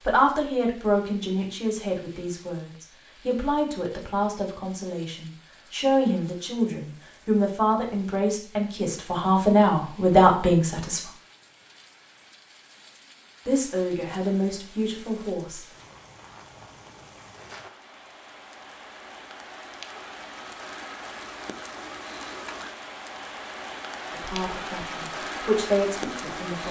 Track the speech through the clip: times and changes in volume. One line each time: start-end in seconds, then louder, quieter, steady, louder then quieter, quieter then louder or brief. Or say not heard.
0.1-11.0 louder
13.4-15.7 brief
24.1-26.6 brief.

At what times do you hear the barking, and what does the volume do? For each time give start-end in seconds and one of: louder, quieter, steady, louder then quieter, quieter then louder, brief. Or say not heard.
not heard.